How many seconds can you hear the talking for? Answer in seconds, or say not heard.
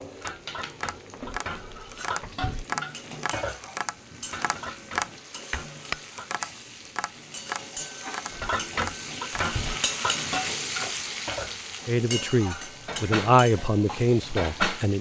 3 s.